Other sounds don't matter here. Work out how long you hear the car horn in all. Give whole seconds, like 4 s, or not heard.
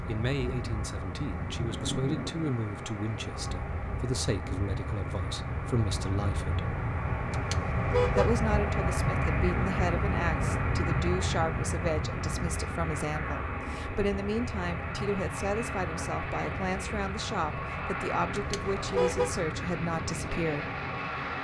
2 s.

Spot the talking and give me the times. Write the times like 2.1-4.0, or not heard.
0.1-6.7, 8.2-20.6.